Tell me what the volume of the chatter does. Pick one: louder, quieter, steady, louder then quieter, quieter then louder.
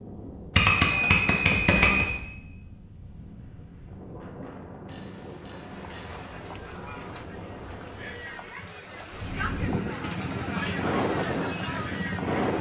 louder.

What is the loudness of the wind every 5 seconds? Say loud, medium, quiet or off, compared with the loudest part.
quiet, medium, loud.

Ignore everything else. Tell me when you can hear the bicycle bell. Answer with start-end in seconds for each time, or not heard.
0.6-2.1, 4.8-6.2, 8.5-10.6.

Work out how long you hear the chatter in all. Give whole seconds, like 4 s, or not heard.
7 s.